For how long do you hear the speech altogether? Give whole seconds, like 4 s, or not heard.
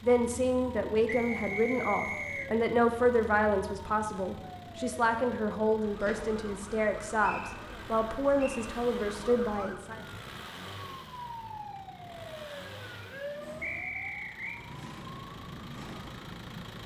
10 s.